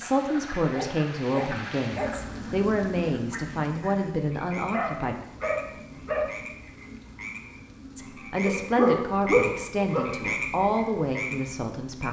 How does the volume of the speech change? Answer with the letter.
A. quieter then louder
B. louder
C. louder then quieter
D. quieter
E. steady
E.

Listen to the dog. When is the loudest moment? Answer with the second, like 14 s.
9 s.